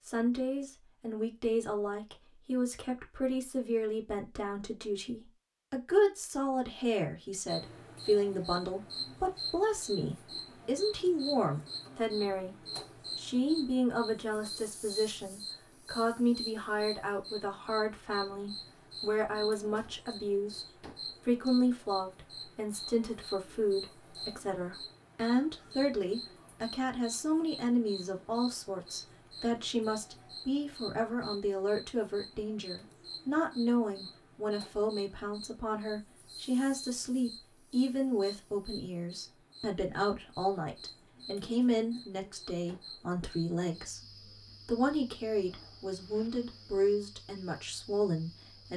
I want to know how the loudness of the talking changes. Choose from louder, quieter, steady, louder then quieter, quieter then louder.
steady.